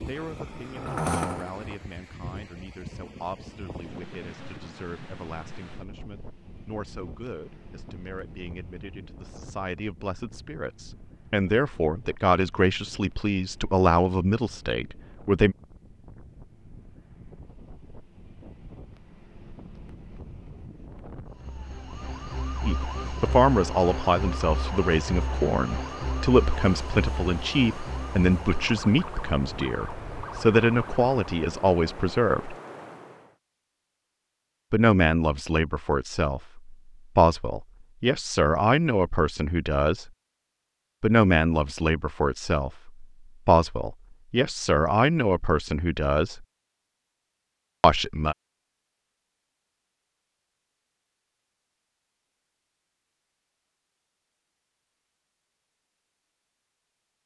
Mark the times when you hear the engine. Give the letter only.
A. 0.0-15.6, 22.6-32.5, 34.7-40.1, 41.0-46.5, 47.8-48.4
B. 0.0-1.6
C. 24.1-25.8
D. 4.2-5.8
B.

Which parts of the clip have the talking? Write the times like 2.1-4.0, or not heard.
0.0-15.6, 22.6-32.5, 34.7-40.1, 41.0-46.5, 47.8-48.4.